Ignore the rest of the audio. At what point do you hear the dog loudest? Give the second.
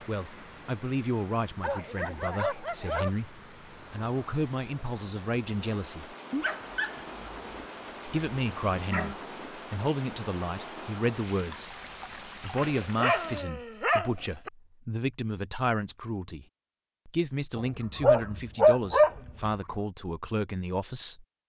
19 s.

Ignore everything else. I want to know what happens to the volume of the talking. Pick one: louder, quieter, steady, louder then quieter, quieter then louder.
steady.